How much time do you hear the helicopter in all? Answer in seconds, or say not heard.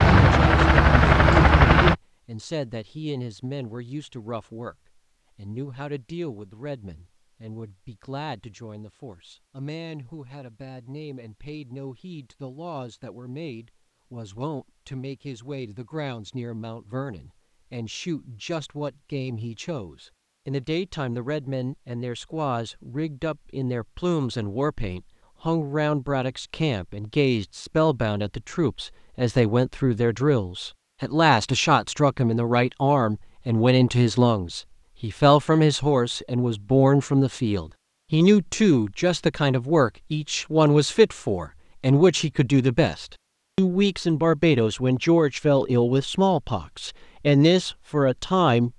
2 s.